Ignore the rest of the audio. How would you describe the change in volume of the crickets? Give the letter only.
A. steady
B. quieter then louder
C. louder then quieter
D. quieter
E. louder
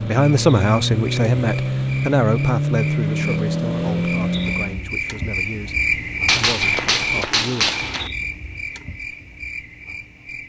C.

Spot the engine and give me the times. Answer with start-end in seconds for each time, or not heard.
0.0-4.9.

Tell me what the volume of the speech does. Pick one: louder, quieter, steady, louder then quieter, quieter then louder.
quieter.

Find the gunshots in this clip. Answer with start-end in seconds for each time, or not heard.
6.2-8.1.